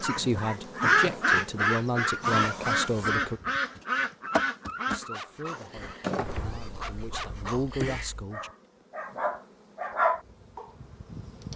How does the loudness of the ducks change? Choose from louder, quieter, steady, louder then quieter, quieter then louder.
quieter.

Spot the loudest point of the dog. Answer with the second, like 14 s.
10 s.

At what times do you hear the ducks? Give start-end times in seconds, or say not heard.
0.0-8.2.